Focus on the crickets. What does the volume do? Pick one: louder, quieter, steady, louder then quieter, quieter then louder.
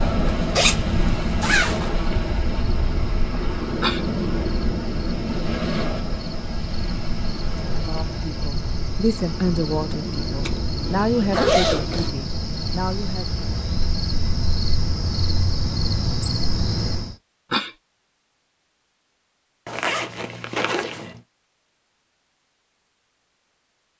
louder.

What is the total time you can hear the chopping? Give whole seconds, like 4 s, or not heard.
not heard.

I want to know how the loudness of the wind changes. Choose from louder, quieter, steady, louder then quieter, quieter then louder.
quieter.